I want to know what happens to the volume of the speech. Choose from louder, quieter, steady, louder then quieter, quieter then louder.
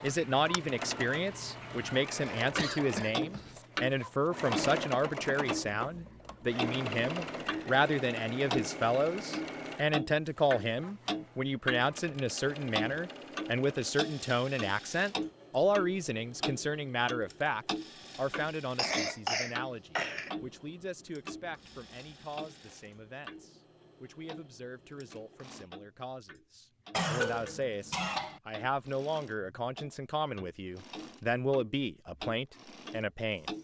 quieter then louder.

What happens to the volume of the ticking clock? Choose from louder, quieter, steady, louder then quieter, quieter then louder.
quieter.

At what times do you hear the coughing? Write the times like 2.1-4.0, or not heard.
2.4-3.6, 18.8-20.3, 26.9-28.4.